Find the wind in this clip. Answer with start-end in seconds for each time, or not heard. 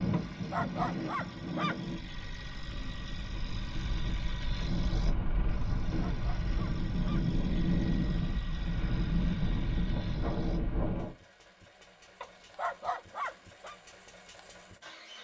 0.0-11.2.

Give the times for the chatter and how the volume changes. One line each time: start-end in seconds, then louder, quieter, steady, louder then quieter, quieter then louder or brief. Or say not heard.
not heard.